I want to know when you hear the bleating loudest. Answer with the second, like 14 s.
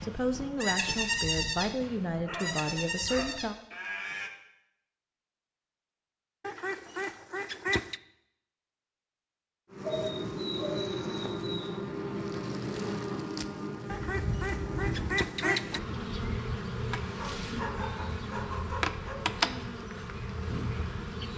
1 s.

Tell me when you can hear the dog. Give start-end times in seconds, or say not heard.
1.8-3.8, 9.8-11.7, 17.1-19.1.